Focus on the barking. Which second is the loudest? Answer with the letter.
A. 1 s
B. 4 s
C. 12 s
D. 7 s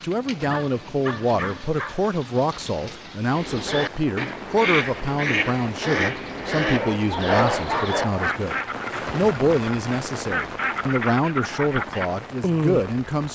D.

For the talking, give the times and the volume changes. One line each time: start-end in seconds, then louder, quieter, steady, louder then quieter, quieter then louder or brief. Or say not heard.
0.0-13.3 steady.